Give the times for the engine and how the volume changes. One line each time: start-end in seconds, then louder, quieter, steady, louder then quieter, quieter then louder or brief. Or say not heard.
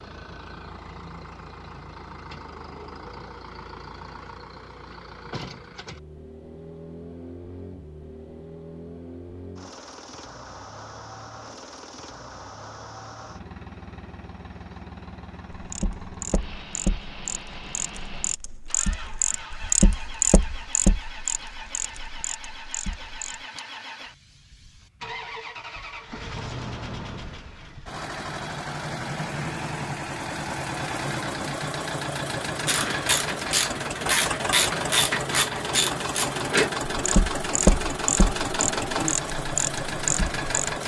0.0-40.8 louder.